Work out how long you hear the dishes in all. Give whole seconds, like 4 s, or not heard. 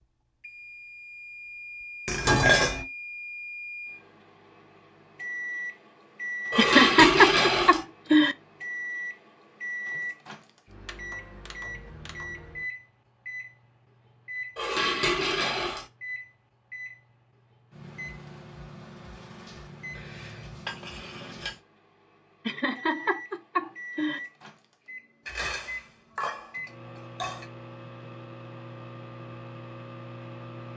7 s.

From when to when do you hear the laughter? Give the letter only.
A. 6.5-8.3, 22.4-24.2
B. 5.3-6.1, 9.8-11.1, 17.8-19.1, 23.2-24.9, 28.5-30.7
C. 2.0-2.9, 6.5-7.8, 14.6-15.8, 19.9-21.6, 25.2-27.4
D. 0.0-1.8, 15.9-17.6
A.